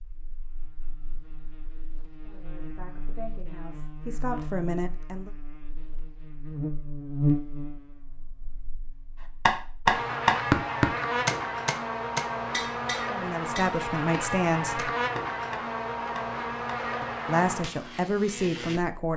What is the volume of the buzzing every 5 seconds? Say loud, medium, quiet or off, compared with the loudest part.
quiet, loud, loud, loud.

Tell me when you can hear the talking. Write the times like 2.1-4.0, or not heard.
2.2-5.3, 13.1-14.9, 17.2-19.1.